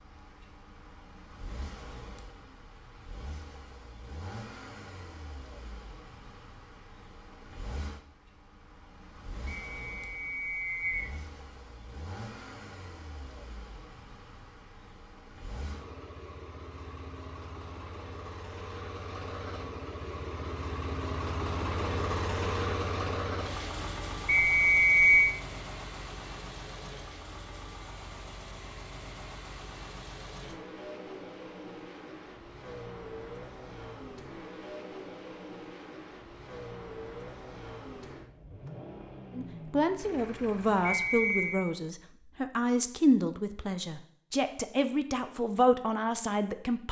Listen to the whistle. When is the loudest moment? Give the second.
25 s.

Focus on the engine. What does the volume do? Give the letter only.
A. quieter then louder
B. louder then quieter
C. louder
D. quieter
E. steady
B.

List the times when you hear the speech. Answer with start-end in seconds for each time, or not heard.
39.4-46.8.